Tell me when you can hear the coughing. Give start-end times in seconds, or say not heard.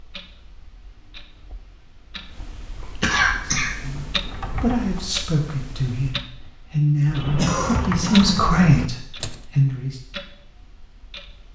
3.0-3.7, 7.3-8.5.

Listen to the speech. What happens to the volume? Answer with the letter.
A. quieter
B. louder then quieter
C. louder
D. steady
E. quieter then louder
C.